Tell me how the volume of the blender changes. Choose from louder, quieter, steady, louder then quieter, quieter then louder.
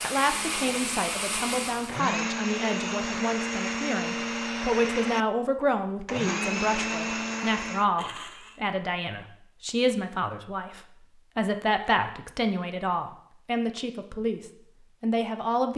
steady.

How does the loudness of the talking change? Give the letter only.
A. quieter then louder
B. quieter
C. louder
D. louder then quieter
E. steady
E.